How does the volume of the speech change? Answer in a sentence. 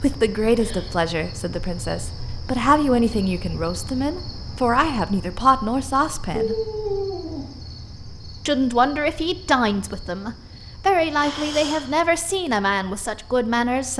The loudness of the speech stays about the same.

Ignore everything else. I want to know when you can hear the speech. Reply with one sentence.
You can hear the speech from 0.0 to 6.6 s and from 8.4 to 13.9 s.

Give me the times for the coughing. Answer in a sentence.
The coughing can be heard from 0.5 to 0.9 s, from 6.3 to 7.5 s and from 11.2 to 12.0 s.